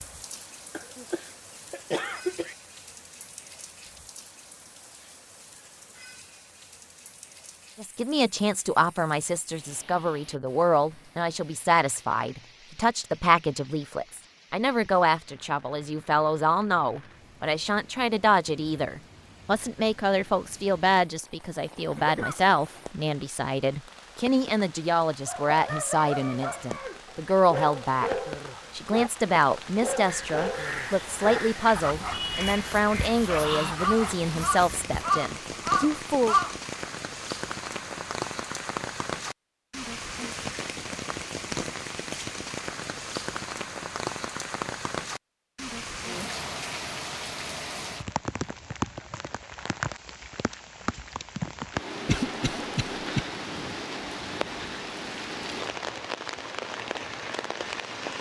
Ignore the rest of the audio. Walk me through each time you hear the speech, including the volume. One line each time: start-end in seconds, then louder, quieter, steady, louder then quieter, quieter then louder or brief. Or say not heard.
7.8-36.4 steady.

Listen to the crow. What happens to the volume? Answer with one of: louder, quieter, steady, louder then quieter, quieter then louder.
louder.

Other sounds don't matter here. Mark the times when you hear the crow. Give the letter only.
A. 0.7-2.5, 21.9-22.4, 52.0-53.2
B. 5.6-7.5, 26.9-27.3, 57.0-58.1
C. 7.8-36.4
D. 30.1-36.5
D.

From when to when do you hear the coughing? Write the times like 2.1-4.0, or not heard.
0.7-2.5, 21.9-22.4, 52.0-53.2.